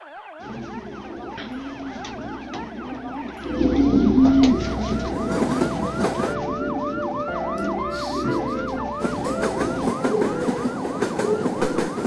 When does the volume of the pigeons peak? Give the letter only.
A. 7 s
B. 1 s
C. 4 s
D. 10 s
C.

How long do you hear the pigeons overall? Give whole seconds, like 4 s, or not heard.
11 s.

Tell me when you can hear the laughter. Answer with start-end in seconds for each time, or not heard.
7.5-9.3.